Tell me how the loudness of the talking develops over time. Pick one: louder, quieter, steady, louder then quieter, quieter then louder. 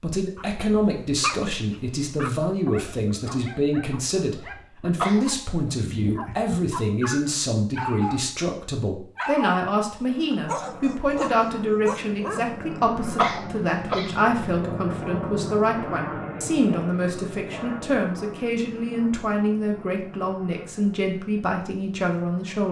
steady.